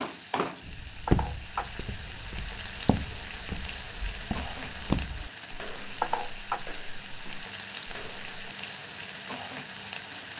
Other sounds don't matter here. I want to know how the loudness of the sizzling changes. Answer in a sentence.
The volume of the sizzling stays about the same.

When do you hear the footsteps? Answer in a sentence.
You can hear the footsteps from 0.6 to 8.2 s.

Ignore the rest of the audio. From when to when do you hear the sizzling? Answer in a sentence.
The sizzling can be heard from 0.0 to 10.3 s.